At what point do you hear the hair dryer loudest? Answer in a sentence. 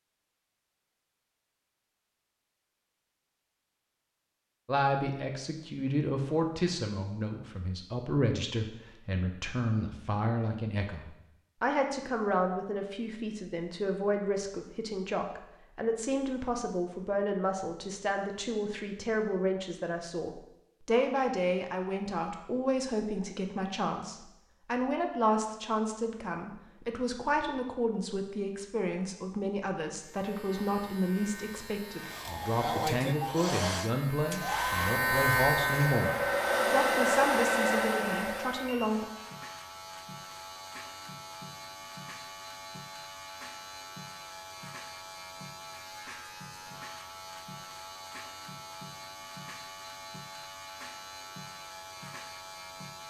The loudest moment of the hair dryer is at 37 seconds.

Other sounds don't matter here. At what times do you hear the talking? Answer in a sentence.
The talking can be heard from 4.7 to 39.0 s.